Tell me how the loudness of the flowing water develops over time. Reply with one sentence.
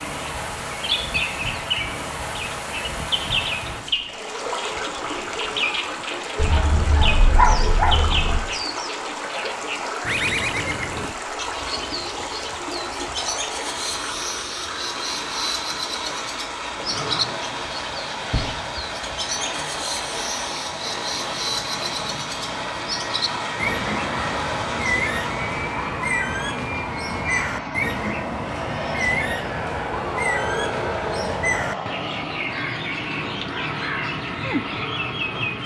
The volume of the flowing water stays about the same.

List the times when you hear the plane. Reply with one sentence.
The plane can be heard from 16.7 to 35.6 s.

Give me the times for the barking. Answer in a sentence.
The barking can be heard from 6.3 to 8.4 s.